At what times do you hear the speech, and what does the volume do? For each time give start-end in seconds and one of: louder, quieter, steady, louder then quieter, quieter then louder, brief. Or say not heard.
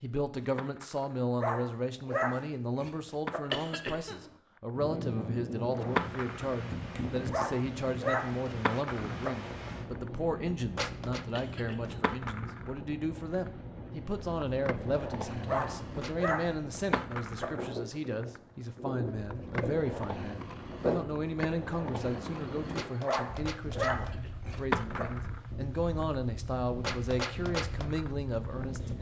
0.0-28.9 steady.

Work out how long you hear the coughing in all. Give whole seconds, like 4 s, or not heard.
2 s.